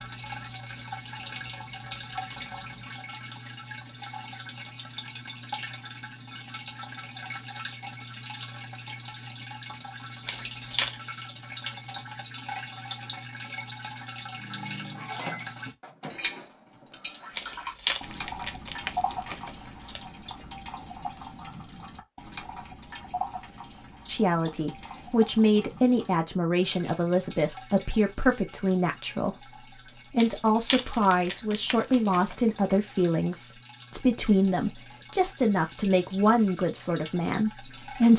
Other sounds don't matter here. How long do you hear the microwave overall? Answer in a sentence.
The microwave can be heard for 2 seconds in total.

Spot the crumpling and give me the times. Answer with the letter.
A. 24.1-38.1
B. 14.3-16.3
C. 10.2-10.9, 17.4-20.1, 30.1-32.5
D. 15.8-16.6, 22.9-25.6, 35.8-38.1
C.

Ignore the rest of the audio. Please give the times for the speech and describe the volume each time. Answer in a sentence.
The speech can be heard from 24.1 to 38.1 s, at a steady volume.